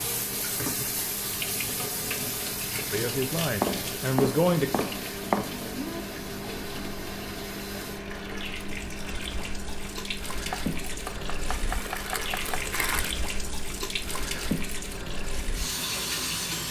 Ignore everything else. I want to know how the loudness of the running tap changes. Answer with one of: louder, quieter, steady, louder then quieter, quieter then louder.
quieter then louder.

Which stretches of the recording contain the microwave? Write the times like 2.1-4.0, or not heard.
0.0-16.6.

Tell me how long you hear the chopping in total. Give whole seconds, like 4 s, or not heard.
4 s.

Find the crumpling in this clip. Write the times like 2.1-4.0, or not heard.
11.7-13.1.